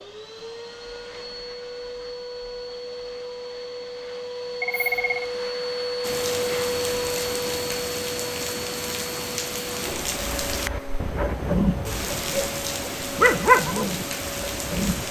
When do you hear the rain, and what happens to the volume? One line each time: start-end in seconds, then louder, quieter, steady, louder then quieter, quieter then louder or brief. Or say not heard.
6.0-15.0 steady.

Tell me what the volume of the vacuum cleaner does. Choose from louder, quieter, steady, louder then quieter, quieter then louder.
louder then quieter.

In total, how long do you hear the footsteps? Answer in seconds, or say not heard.
not heard.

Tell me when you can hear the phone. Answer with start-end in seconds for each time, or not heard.
4.6-5.3.